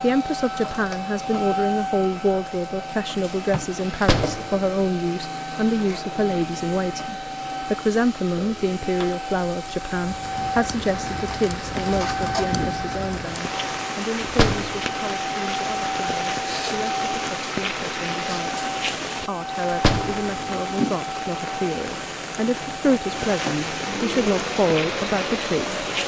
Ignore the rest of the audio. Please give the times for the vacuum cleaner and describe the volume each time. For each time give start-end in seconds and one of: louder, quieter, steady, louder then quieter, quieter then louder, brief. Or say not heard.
0.0-26.0 steady.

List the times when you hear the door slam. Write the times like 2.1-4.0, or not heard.
4.0-4.7, 14.2-14.9, 19.7-20.3.